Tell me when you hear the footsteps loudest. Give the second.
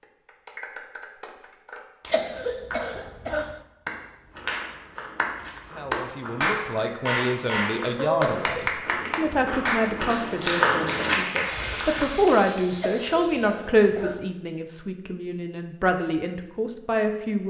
11 s.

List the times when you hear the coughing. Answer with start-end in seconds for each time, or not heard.
2.1-3.6, 8.2-8.8, 12.8-14.3.